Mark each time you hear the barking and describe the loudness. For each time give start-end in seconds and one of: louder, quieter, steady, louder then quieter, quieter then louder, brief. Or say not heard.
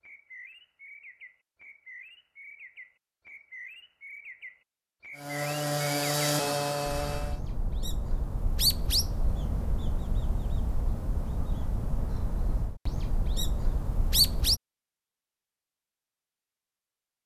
not heard.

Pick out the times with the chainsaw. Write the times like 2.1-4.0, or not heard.
5.1-7.4.